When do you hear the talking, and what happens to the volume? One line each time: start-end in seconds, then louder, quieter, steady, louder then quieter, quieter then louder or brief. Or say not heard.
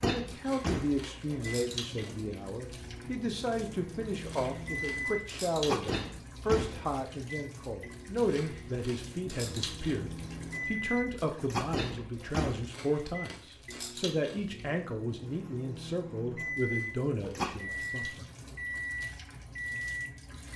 0.0-18.2 steady.